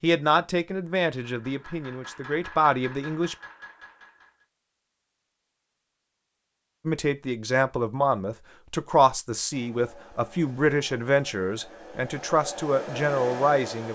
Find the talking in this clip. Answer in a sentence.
The talking can be heard from 0.0 to 3.4 s and from 6.8 to 13.9 s.